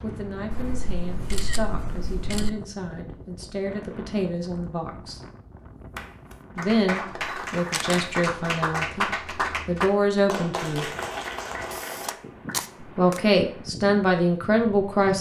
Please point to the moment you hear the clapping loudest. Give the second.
9 s.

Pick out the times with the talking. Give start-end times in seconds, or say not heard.
0.0-5.2, 6.5-10.8, 12.9-15.1.